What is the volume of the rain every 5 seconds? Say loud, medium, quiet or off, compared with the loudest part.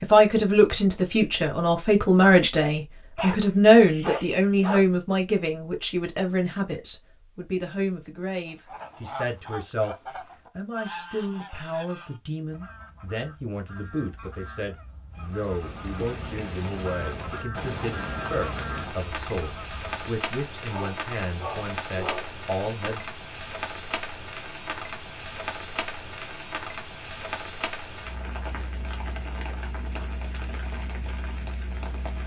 off, off, off, loud, loud, loud, loud.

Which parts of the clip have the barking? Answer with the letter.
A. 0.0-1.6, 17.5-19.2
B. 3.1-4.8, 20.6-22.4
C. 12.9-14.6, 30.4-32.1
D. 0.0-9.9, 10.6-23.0
B.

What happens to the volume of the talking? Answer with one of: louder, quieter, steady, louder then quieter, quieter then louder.
quieter.